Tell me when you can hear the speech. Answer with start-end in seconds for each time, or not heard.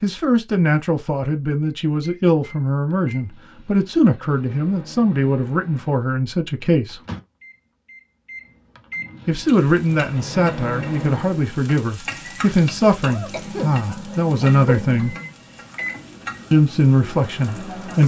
0.0-7.0, 9.2-15.2, 16.5-18.0.